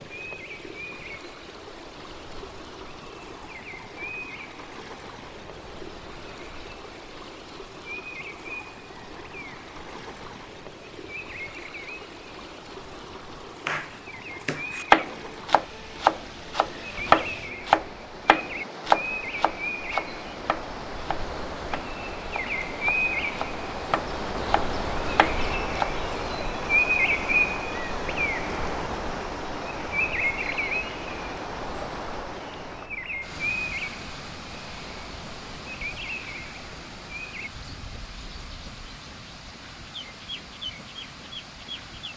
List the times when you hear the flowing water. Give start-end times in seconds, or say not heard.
0.0-42.1.